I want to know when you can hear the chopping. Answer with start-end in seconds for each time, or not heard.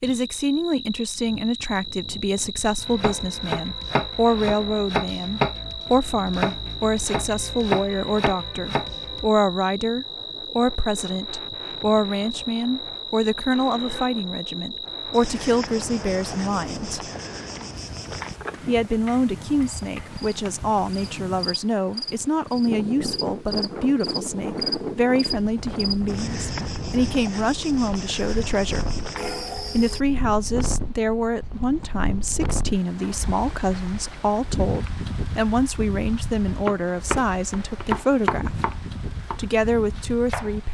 2.8-9.3, 36.5-40.5.